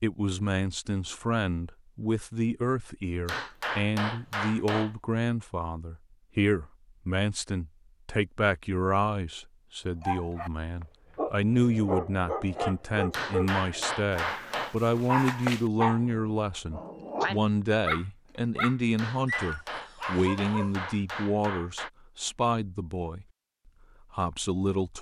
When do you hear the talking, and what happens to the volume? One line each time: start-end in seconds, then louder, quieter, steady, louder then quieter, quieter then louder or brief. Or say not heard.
0.0-23.2 steady
24.1-24.9 brief.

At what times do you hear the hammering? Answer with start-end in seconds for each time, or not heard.
3.2-5.0, 13.1-14.8, 18.9-21.9.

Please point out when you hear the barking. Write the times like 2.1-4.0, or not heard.
10.0-20.9.